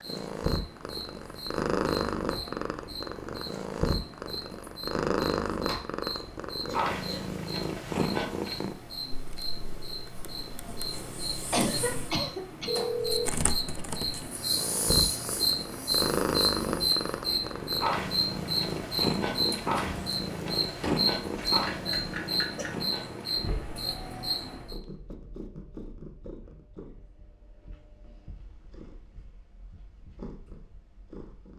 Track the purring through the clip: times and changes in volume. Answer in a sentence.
The purring can be heard from 0.0 to 31.5 s, getting quieter.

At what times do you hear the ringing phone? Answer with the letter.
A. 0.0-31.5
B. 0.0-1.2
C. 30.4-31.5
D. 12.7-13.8
D.